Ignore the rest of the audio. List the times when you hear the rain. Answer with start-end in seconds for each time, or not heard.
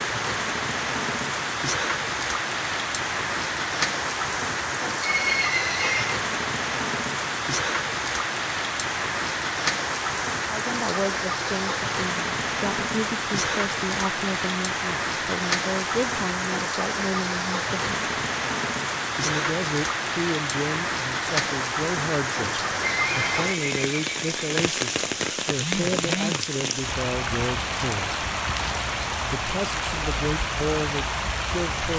0.0-31.9.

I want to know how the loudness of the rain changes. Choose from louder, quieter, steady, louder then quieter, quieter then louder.
steady.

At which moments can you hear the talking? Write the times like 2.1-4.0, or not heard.
10.5-18.1, 19.2-28.1, 29.3-31.9.